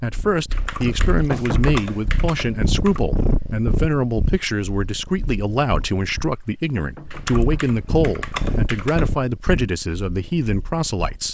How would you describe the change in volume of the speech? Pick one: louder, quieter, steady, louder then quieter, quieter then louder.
steady.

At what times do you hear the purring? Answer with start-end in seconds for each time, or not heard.
0.0-11.2.